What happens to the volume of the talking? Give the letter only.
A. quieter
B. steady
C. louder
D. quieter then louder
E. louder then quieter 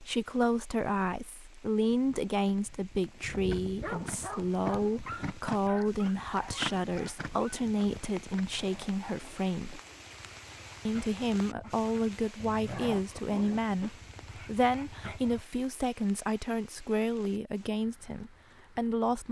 B.